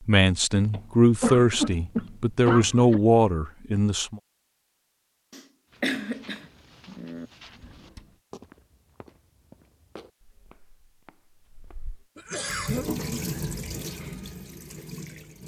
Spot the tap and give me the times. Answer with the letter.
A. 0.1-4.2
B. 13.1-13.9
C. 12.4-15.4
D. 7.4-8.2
C.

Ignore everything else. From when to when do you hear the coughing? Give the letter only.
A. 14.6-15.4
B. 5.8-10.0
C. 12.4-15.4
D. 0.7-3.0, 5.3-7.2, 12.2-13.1
D.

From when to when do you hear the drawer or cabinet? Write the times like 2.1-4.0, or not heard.
7.4-8.2.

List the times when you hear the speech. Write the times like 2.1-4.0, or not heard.
0.1-4.2.